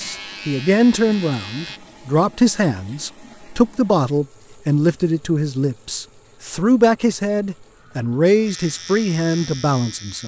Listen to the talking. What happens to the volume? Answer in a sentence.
The loudness of the talking stays about the same.